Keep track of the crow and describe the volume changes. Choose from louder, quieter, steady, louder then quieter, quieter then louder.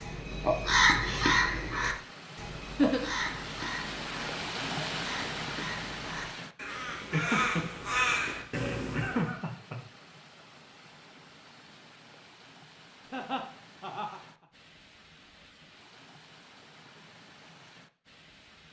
quieter then louder.